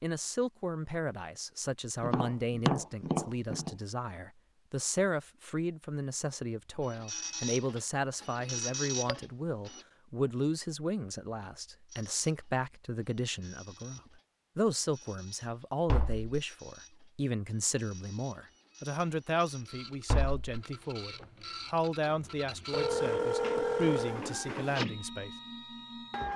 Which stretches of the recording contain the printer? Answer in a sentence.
You can hear the printer from 6.8 to 9.8 s and from 11.8 to 26.3 s.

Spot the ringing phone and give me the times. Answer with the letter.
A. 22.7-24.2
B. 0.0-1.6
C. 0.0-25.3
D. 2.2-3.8
A.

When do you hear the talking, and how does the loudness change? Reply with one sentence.
The talking can be heard from 0.0 to 25.3 s, at a steady volume.